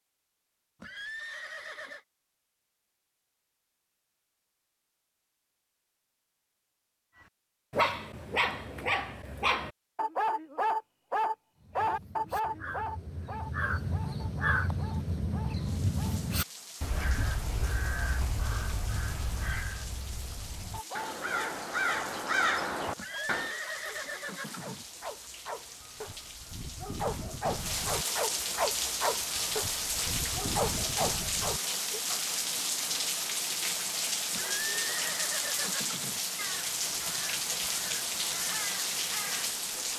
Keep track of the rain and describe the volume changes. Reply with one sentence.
The loudness of the rain goes up.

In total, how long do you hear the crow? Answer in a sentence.
The crow can be heard for 15 seconds in total.